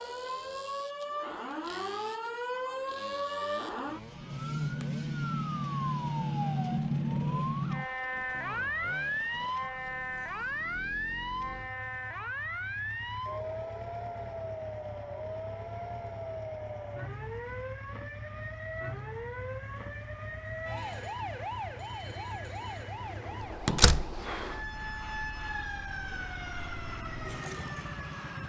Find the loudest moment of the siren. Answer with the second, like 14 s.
7 s.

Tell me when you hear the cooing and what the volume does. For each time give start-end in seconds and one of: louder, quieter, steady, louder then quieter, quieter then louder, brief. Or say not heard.
not heard.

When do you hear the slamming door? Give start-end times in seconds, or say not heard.
23.6-24.2.